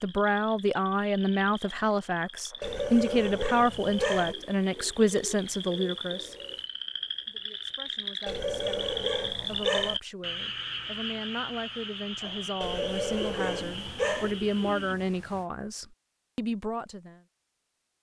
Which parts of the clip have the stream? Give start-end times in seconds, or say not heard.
not heard.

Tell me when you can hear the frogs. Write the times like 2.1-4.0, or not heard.
0.0-14.9.